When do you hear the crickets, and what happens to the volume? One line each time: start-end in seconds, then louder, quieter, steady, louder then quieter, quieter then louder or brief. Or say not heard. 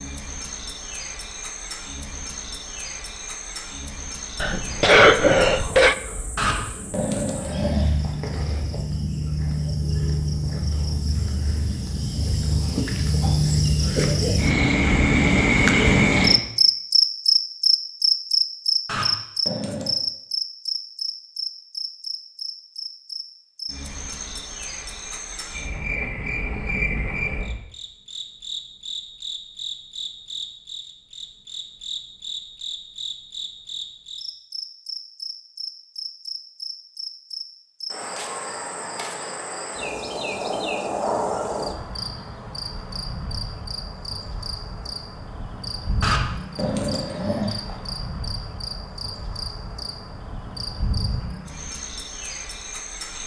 0.0-53.2 louder then quieter.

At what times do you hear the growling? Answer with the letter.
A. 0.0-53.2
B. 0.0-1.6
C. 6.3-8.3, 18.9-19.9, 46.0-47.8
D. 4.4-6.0
C.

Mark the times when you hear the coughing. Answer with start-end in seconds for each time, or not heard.
4.4-6.0.